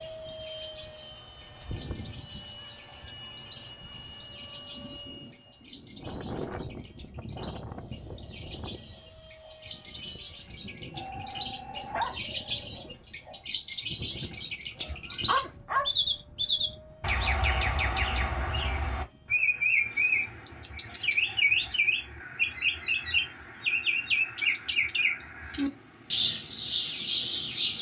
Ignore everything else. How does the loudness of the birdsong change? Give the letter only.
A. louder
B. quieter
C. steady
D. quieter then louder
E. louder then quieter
A.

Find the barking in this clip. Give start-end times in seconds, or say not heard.
10.9-12.2, 14.8-15.8.